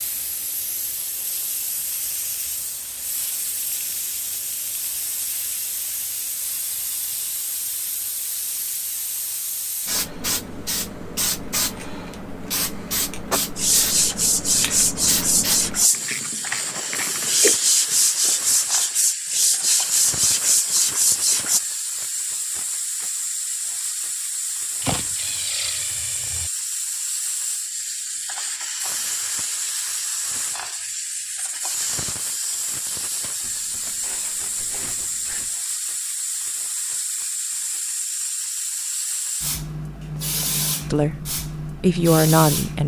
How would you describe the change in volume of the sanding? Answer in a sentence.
The volume of the sanding stays about the same.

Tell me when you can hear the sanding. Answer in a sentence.
The sanding can be heard from 13.3 to 21.6 s.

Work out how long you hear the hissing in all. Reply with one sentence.
The hissing can be heard for 43 seconds in total.